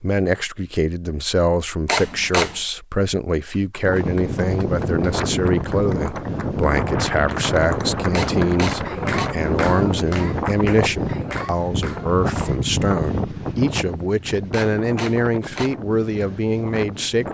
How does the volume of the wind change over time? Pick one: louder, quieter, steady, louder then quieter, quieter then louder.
quieter.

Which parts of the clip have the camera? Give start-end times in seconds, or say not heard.
1.9-2.6, 8.1-9.3, 14.5-15.8.